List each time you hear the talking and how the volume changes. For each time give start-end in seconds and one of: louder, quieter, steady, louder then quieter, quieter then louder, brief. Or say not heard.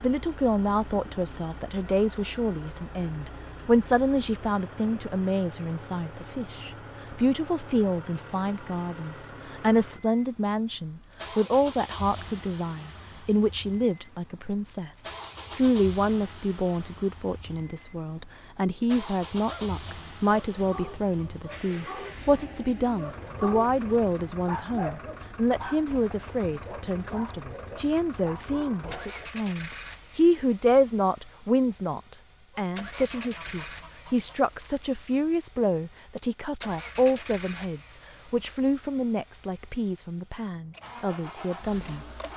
0.0-42.0 steady.